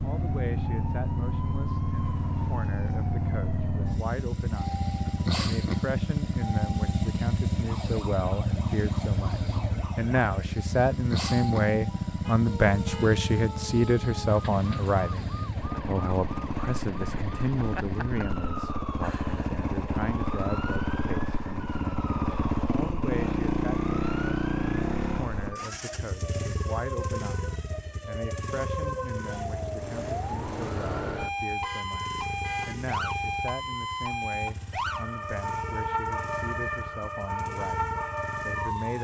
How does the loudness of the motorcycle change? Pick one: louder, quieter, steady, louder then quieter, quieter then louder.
quieter.